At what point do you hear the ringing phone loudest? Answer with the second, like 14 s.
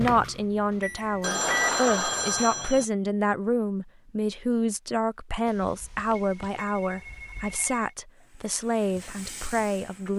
2 s.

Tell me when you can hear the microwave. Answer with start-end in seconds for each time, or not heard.
0.0-2.7.